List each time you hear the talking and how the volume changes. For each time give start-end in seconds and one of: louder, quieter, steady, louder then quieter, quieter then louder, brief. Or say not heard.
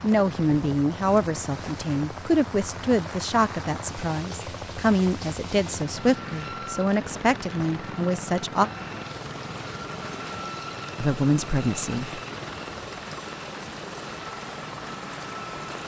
0.0-8.7 steady
10.9-12.2 brief.